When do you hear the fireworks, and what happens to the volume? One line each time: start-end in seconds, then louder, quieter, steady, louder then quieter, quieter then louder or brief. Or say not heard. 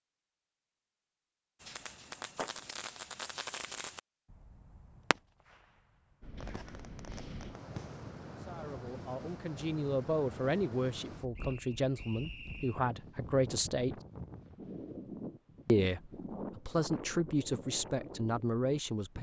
1.6-8.1 quieter.